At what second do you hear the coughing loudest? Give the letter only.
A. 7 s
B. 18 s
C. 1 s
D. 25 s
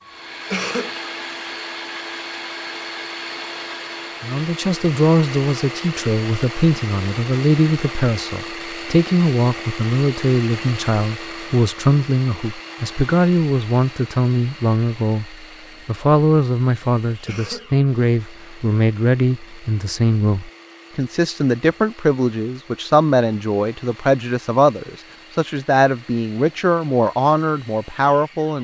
C.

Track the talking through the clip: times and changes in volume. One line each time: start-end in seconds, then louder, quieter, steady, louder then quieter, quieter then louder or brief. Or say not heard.
4.2-28.5 steady.